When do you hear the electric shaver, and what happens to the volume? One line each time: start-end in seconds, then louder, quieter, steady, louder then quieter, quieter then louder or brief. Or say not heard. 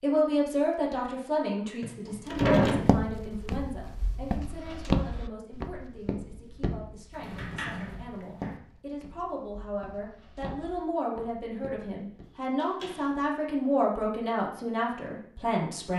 not heard.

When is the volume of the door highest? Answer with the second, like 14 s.
3 s.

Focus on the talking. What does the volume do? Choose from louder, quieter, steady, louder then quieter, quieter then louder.
quieter then louder.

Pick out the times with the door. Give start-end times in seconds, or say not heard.
1.8-3.0, 7.1-8.6, 12.2-13.1.